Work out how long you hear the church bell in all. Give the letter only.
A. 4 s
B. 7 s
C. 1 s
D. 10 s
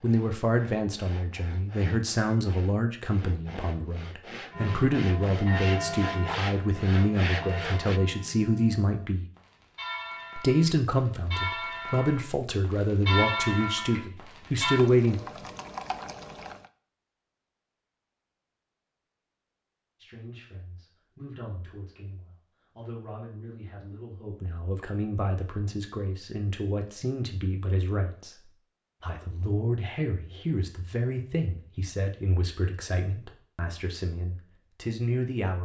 D.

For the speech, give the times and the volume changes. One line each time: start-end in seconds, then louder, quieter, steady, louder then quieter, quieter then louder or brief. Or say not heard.
0.0-9.2 steady
10.3-15.2 steady
20.0-35.6 louder.